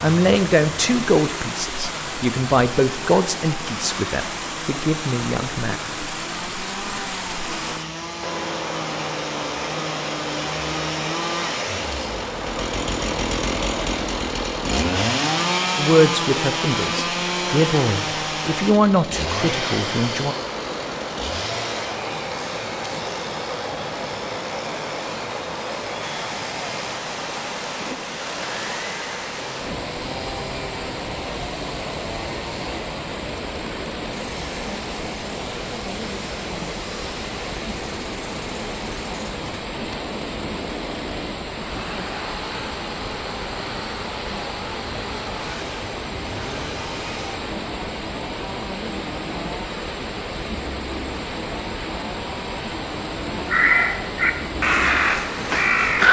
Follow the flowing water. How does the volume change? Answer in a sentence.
The loudness of the flowing water stays about the same.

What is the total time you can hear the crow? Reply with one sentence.
You can hear the crow for 3 seconds altogether.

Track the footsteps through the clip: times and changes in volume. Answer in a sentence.
The footsteps can't be heard in this clip.